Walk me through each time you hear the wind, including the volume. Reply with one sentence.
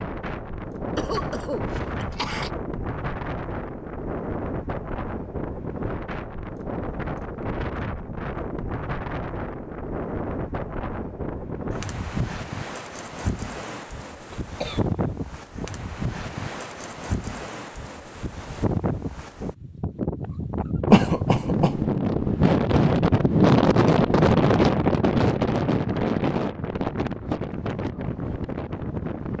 The wind can be heard from 0.0 to 29.3 s, getting louder.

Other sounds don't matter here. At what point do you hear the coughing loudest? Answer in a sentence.
The loudest moment of the coughing is at 21 seconds.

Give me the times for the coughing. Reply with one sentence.
You can hear the coughing from 0.9 to 2.5 s, from 14.3 to 14.8 s and from 20.9 to 21.8 s.